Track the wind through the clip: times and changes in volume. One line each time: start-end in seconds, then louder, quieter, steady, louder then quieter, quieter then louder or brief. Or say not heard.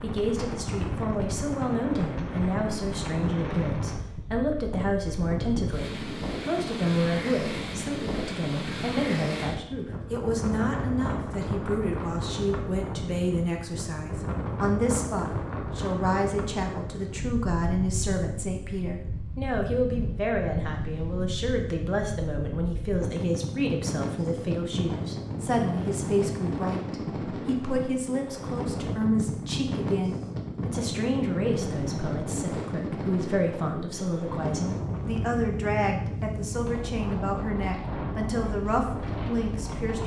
0.0-40.0 steady.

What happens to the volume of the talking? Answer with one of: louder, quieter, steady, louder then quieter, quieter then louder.
steady.